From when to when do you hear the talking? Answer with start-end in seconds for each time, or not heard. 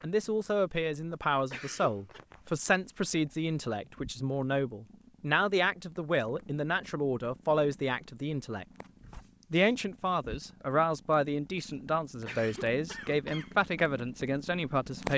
0.0-8.7, 9.5-15.1.